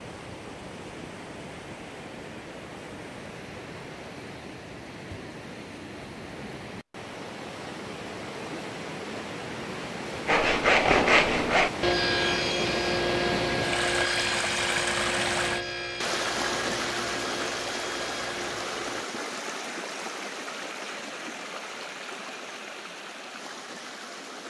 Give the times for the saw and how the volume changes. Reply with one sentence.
The saw can be heard from 10.2 to 19.1 s, getting quieter.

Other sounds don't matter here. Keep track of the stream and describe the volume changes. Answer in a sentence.
The loudness of the stream goes up, then down.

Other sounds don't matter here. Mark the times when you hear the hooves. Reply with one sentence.
The hooves can't be heard in this clip.